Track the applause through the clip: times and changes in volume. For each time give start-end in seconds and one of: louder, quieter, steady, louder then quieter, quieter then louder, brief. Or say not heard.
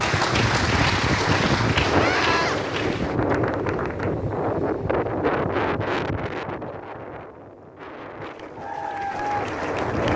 0.0-4.2 quieter
8.2-10.1 brief.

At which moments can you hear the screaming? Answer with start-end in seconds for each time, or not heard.
1.9-2.6.